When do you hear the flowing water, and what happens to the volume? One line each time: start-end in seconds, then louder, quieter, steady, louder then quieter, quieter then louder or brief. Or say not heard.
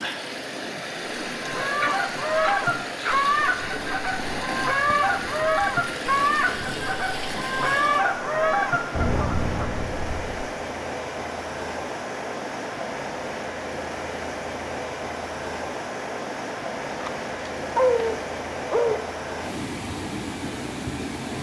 0.0-21.3 steady.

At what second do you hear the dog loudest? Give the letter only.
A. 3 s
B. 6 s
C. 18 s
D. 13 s
C.